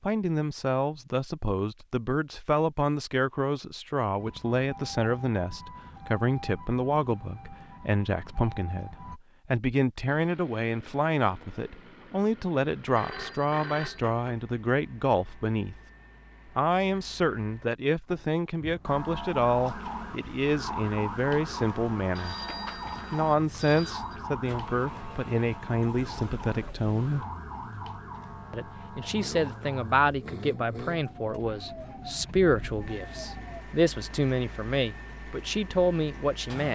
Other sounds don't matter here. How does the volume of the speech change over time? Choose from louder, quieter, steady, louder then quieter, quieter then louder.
steady.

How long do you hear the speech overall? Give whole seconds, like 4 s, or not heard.
34 s.